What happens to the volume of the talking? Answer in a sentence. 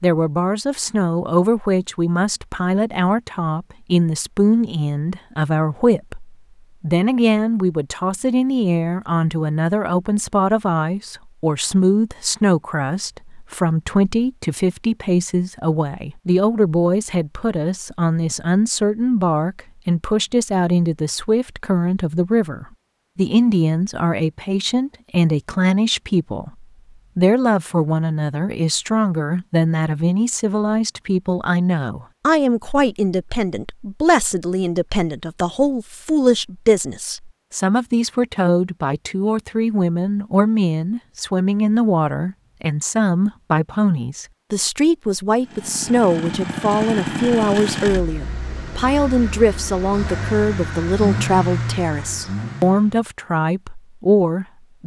The loudness of the talking stays about the same.